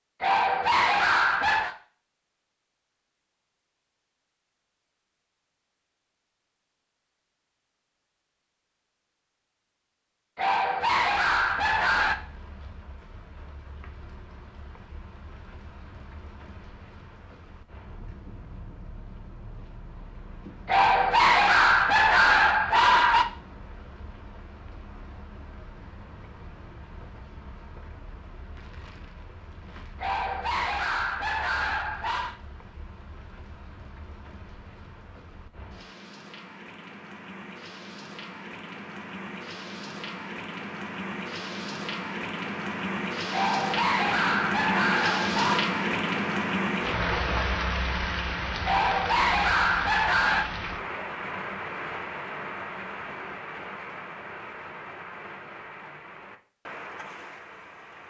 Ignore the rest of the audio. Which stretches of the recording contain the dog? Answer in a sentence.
You can hear the dog from 0.2 to 1.8 s, from 10.3 to 12.2 s, from 20.6 to 23.2 s, from 30.0 to 32.4 s, from 43.3 to 45.6 s and from 48.6 to 50.5 s.